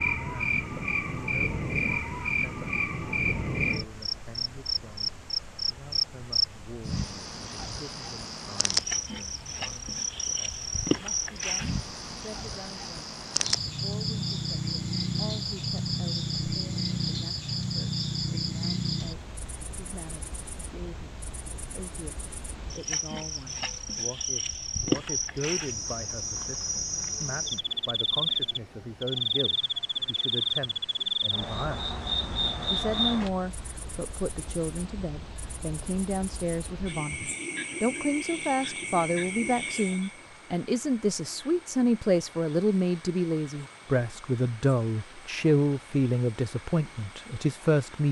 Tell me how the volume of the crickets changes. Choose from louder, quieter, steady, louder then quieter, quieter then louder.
quieter.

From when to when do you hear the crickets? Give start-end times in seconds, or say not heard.
0.0-48.0.